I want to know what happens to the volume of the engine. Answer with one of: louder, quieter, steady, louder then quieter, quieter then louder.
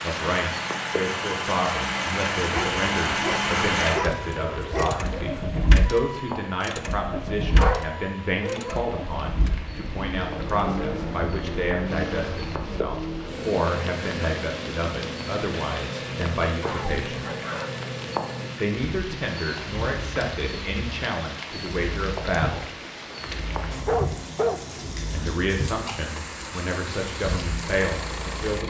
quieter.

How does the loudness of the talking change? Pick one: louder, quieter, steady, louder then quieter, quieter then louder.
steady.